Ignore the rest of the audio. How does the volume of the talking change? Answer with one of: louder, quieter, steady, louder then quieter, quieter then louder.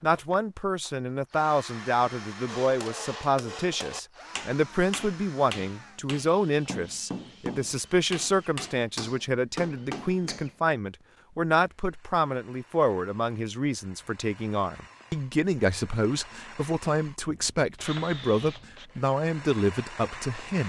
steady.